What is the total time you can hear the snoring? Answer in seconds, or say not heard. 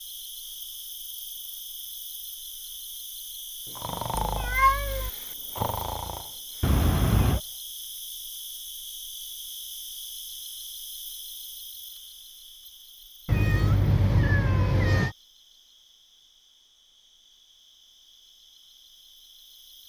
3 s.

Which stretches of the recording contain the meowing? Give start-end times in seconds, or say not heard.
4.2-5.1, 6.6-7.4, 13.2-15.2.